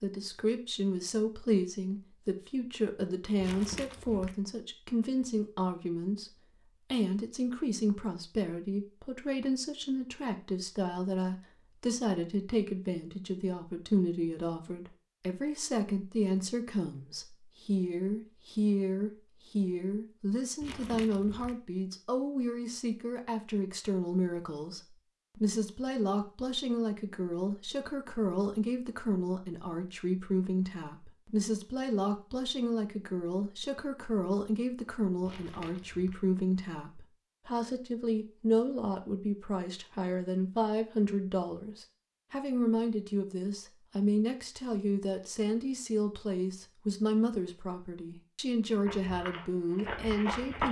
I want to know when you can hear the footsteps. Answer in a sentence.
You can hear the footsteps from 48.9 to 50.6 s.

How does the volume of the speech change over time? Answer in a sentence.
The loudness of the speech stays about the same.